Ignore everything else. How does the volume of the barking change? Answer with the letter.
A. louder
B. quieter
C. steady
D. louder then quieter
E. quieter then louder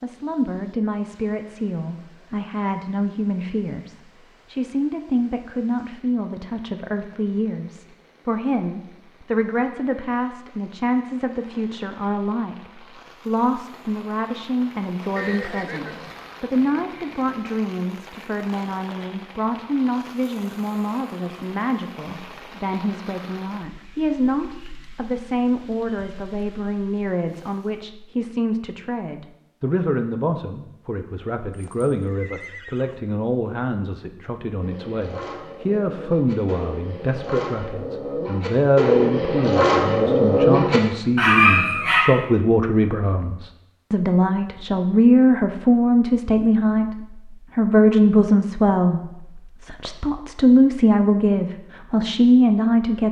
A.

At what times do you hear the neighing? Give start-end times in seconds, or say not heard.
15.2-16.4, 31.5-33.0.